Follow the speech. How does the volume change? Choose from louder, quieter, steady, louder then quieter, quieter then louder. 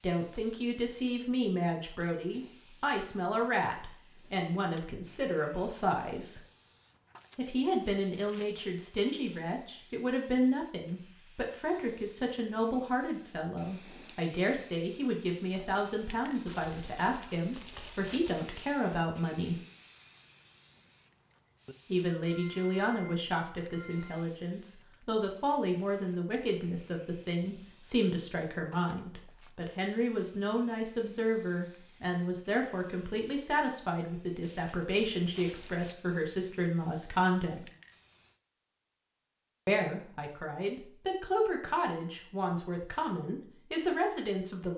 steady.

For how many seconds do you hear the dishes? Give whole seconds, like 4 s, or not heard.
not heard.